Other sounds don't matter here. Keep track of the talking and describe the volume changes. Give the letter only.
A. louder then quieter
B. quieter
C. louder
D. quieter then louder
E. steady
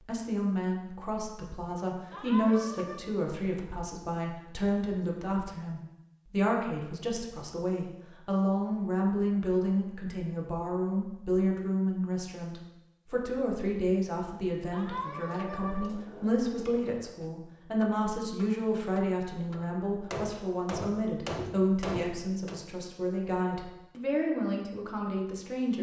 E.